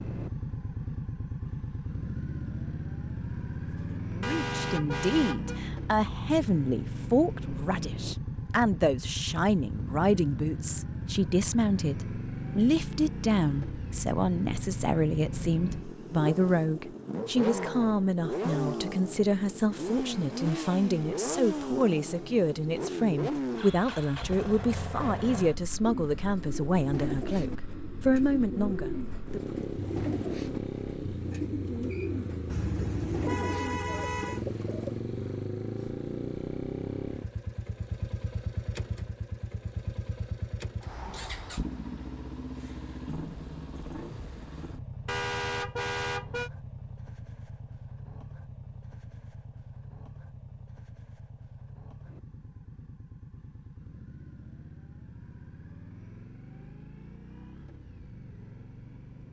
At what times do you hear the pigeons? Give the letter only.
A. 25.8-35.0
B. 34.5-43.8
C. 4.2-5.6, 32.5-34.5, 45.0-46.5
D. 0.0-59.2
A.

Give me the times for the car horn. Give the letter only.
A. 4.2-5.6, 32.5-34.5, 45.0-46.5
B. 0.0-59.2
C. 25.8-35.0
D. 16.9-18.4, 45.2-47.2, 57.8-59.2
A.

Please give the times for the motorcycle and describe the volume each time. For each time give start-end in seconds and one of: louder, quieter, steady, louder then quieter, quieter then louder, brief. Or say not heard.
0.0-59.2 quieter.